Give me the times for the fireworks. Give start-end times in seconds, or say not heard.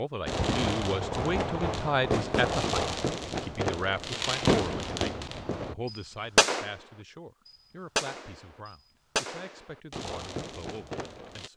0.2-11.5.